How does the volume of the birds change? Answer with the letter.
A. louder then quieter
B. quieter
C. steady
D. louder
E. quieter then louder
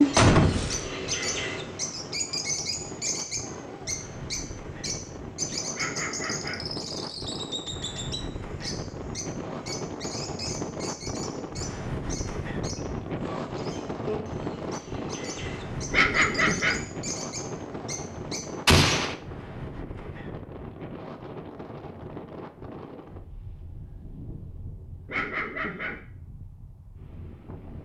B.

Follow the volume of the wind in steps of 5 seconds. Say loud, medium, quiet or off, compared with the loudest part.
medium, loud, loud, loud, medium, quiet.